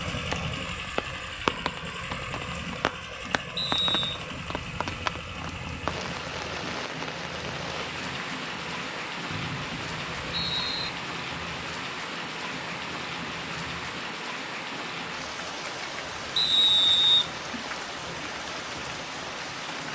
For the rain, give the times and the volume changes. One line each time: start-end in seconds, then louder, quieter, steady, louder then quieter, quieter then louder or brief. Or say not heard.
0.0-19.9 steady.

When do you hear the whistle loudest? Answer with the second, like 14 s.
17 s.